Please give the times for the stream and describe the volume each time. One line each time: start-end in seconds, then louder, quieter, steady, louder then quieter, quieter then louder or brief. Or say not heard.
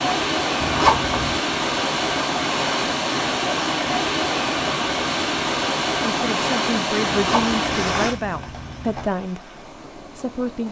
0.0-10.6 quieter.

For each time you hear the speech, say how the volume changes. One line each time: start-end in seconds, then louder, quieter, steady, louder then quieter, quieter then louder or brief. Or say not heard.
6.0-10.6 quieter.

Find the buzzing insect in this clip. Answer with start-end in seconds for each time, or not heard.
not heard.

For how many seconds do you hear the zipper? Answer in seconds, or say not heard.
3 s.